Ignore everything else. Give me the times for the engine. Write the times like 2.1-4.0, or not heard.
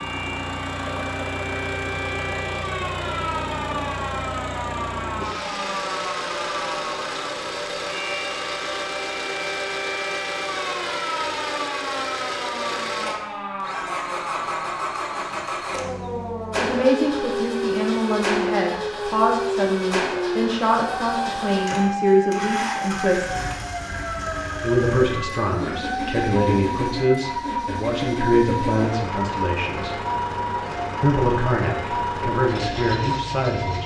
0.0-33.8.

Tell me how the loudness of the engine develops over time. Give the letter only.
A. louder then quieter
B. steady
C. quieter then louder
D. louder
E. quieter
B.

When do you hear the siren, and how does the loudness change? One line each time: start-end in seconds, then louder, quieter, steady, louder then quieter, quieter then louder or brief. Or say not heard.
0.0-33.8 steady.